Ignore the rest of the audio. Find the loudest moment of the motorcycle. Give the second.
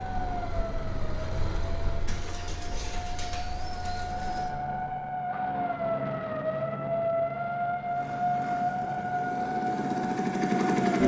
11 s.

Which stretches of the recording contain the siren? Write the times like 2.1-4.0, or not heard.
0.0-11.0.